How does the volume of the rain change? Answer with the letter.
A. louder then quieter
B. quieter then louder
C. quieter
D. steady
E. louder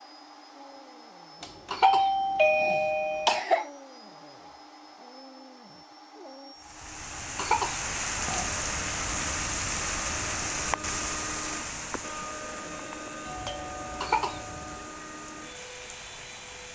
C.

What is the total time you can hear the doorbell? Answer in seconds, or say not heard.
4 s.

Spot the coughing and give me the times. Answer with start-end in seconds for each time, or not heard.
1.7-3.7, 7.3-8.5, 14.0-14.4.